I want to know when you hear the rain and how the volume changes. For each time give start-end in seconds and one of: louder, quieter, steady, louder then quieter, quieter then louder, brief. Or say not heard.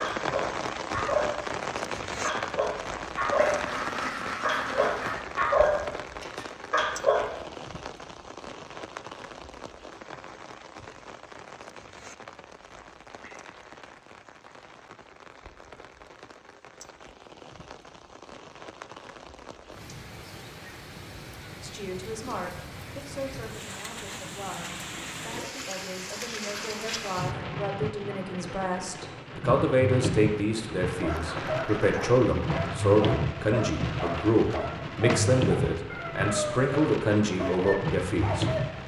0.0-38.8 quieter then louder.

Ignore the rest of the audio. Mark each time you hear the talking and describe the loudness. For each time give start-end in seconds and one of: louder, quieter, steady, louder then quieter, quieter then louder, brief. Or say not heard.
21.6-38.6 louder.